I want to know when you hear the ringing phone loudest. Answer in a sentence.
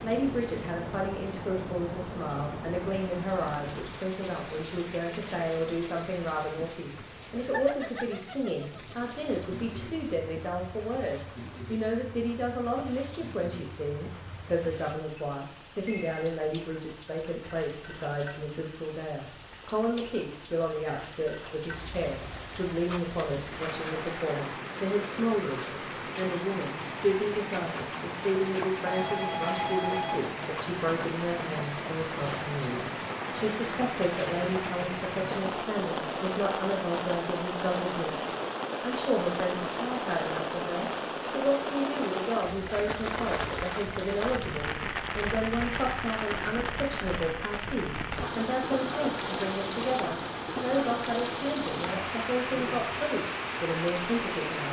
The volume of the ringing phone peaks at 30 seconds.